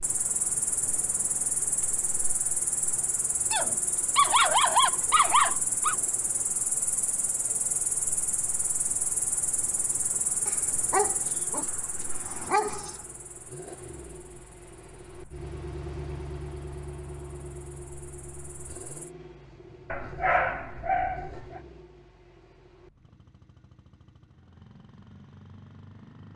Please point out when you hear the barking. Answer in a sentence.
The barking can be heard from 3.5 to 6.0 s, from 10.4 to 12.9 s and from 19.9 to 21.6 s.